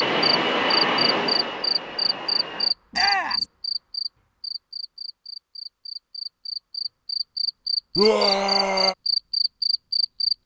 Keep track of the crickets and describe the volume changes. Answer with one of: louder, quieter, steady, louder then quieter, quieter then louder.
quieter then louder.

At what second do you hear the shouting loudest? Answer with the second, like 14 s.
8 s.